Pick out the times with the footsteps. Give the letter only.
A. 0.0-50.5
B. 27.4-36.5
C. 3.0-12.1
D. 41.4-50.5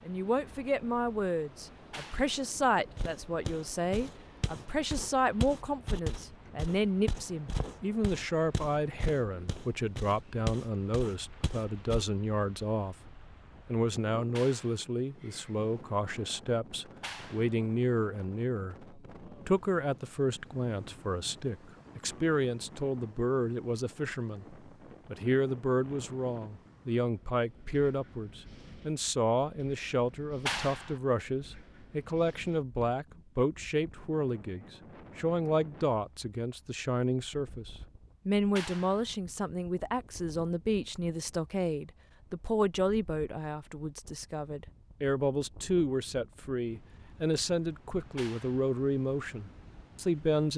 C.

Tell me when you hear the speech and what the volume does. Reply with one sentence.
The speech can be heard from 0.0 to 50.5 s, at a steady volume.